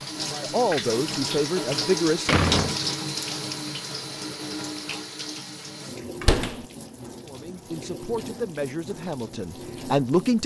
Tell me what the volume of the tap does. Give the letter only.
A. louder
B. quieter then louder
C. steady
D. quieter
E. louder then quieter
D.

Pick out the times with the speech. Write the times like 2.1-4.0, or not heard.
0.2-2.4, 7.2-10.4.